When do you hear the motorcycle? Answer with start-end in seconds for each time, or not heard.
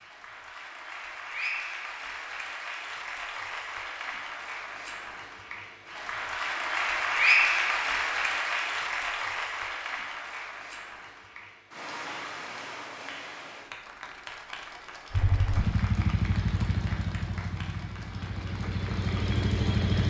15.1-20.0.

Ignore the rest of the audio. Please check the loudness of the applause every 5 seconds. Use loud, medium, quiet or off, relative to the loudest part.
medium, loud, quiet, quiet.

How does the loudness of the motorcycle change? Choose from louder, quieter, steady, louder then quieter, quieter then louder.
quieter then louder.